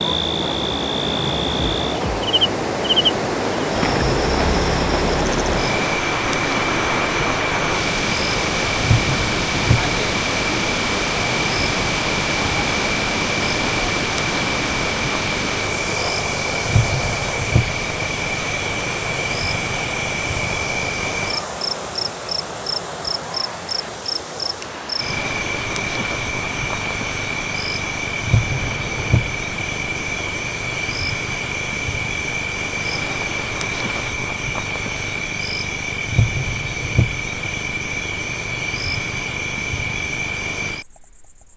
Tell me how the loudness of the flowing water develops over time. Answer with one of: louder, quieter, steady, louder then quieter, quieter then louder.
quieter.